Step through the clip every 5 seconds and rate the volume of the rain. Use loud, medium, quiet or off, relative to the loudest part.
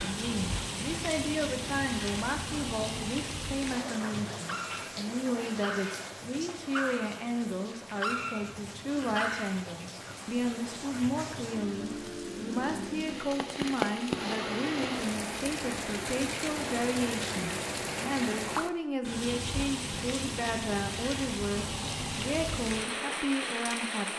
loud, medium, loud, loud, loud.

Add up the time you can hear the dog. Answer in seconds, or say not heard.
5 s.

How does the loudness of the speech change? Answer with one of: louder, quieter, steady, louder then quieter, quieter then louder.
steady.